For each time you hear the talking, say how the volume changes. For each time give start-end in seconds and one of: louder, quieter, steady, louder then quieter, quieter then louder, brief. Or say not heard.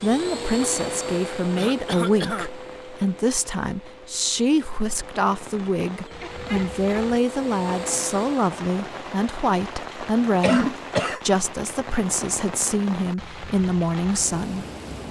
0.0-14.7 steady.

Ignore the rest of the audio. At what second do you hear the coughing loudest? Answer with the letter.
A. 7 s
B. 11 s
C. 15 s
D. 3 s
B.